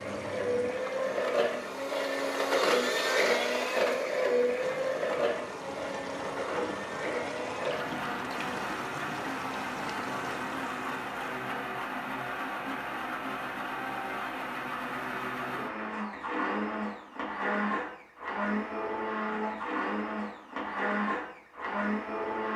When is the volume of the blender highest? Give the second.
3 s.